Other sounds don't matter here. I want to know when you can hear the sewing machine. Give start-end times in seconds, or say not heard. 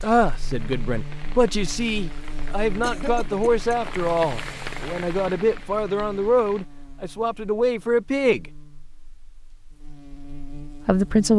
not heard.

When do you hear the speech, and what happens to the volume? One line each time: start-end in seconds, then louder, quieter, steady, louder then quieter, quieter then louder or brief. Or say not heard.
0.0-8.4 steady
10.8-11.3 brief.